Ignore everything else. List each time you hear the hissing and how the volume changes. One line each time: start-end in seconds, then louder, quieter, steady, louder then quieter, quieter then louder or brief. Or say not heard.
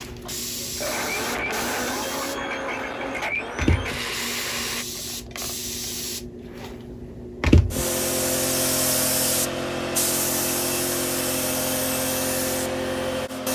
0.0-13.5 louder.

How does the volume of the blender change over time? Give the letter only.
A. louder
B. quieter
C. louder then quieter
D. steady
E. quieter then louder
D.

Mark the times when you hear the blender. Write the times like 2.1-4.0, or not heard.
0.2-4.8.